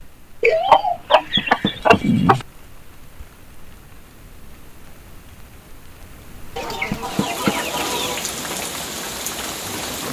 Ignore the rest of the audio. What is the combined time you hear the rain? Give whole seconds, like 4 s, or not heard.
10 s.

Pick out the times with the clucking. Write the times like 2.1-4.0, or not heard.
0.4-2.5, 6.5-8.2.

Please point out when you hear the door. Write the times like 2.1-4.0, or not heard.
1.4-2.0, 6.9-7.5.